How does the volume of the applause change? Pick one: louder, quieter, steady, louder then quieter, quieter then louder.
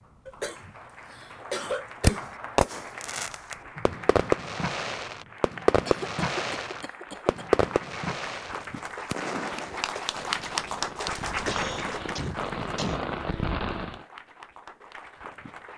louder then quieter.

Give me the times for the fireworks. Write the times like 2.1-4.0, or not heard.
2.0-14.0.